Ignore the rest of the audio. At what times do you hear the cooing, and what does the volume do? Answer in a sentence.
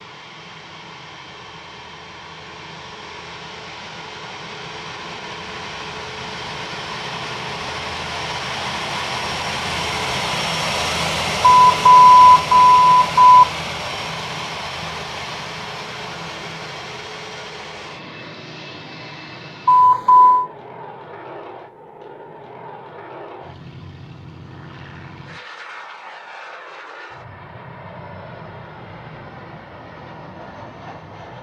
The cooing can't be heard in this clip.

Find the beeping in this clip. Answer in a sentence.
The beeping can be heard from 11.4 to 13.4 s and from 19.6 to 20.5 s.